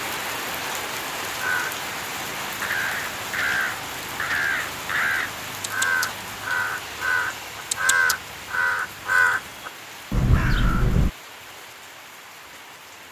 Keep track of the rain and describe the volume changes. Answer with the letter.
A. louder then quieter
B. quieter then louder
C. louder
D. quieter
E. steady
D.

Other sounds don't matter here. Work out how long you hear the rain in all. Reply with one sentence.
The rain can be heard for 13 seconds in total.